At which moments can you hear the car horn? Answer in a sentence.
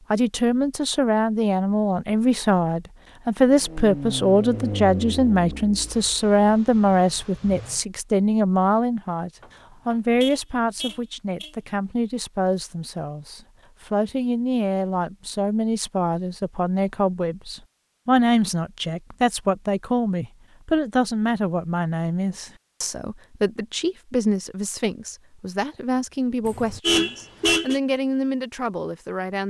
You can hear the car horn from 9.4 to 11.5 s and from 26.4 to 27.8 s.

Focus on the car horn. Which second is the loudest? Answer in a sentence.
The volume of the car horn peaks at 27 seconds.